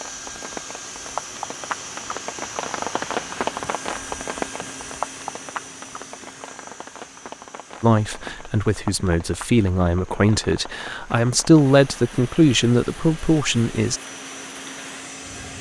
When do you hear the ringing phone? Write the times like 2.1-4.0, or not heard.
not heard.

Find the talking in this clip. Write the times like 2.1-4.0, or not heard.
7.8-14.0.